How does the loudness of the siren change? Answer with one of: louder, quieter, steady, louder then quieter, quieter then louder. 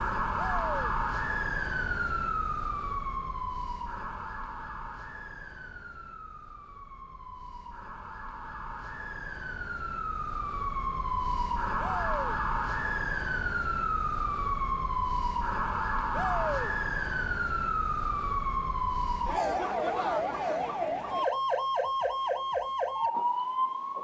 quieter then louder.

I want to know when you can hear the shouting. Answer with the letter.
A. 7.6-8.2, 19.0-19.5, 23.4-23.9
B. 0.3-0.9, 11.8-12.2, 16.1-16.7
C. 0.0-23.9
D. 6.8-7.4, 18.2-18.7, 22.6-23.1
B.